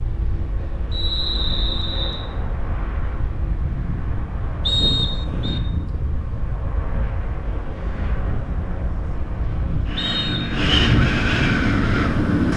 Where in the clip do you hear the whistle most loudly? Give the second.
5 s.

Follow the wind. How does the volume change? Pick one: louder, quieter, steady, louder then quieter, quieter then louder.
louder.